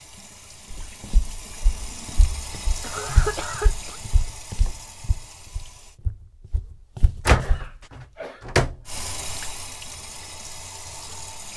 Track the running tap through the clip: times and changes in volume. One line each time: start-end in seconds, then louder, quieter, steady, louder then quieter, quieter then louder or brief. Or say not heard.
0.0-6.0 louder then quieter
8.8-11.5 brief.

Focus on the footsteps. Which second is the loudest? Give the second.
3 s.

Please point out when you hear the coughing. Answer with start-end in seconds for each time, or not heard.
2.8-4.0, 7.3-8.5.